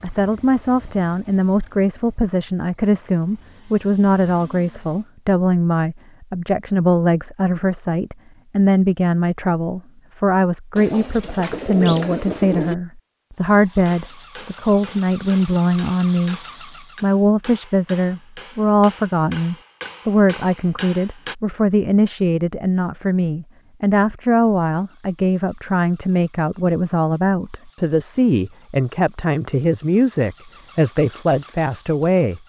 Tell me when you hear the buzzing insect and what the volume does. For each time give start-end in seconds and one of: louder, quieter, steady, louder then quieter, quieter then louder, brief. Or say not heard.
not heard.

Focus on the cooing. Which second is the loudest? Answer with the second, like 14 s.
12 s.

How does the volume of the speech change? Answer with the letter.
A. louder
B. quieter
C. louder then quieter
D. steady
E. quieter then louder
D.